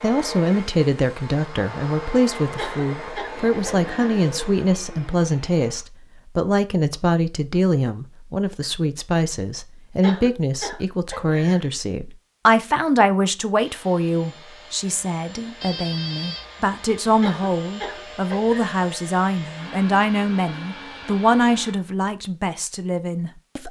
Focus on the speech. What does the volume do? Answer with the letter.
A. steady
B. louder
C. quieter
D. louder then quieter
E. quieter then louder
A.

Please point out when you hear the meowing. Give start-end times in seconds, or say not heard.
not heard.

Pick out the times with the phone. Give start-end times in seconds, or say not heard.
15.6-16.4.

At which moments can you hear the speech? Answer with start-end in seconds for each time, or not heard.
0.0-23.6.